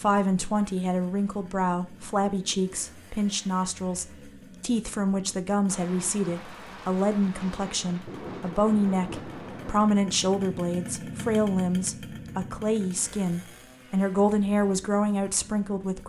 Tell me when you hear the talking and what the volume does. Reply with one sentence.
The talking can be heard from 0.0 to 16.0 s, at a steady volume.